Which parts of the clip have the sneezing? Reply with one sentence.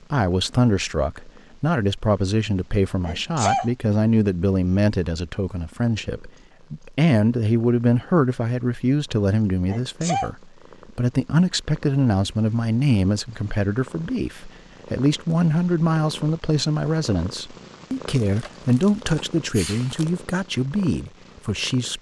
The sneezing can be heard from 3.0 to 3.7 s, from 9.7 to 10.3 s and from 19.5 to 19.9 s.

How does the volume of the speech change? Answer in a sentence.
The volume of the speech stays about the same.